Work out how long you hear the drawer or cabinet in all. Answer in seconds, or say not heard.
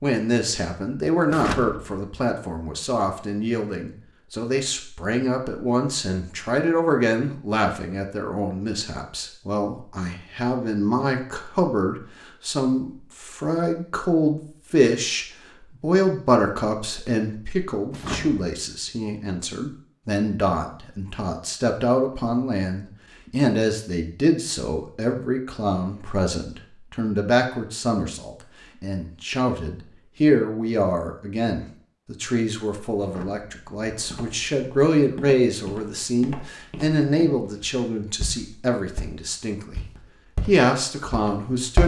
3 s.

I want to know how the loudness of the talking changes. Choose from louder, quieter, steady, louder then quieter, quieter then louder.
steady.